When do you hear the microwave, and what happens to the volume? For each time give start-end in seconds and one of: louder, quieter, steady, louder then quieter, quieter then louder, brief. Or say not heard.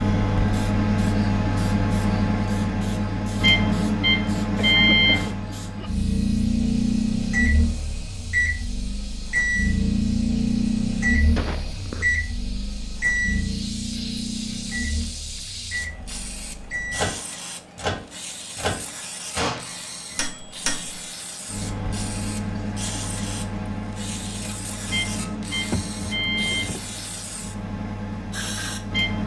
0.0-29.2 quieter.